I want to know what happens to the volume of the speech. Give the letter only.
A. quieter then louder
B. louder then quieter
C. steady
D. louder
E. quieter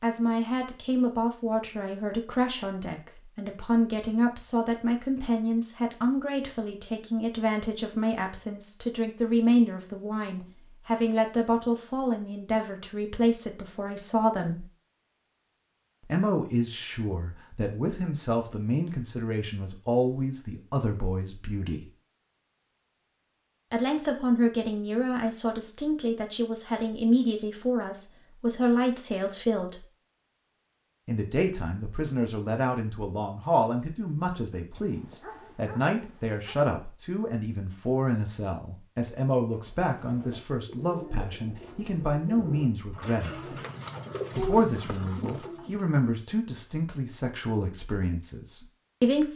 C.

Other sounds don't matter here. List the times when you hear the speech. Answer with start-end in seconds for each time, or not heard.
0.0-14.7, 16.1-21.9, 23.7-29.9, 31.1-43.5, 44.4-49.3.